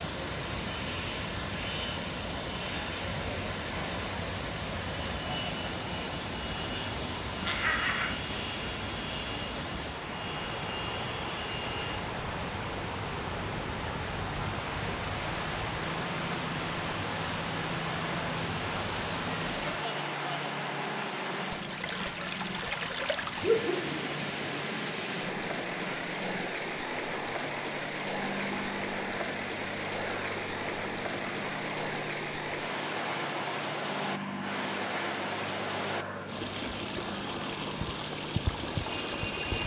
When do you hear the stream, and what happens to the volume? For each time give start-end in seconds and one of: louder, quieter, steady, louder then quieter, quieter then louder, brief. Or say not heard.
0.0-39.6 steady.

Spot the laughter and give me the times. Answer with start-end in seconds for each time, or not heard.
7.5-8.1, 23.4-24.3.